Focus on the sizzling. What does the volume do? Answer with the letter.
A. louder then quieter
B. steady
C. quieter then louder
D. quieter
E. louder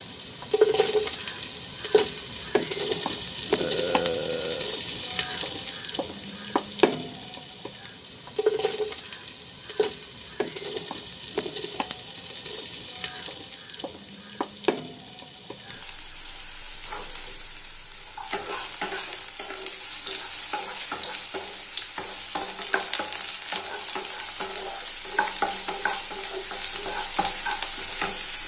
C.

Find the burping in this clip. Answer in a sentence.
The burping can be heard from 3.5 to 4.8 s.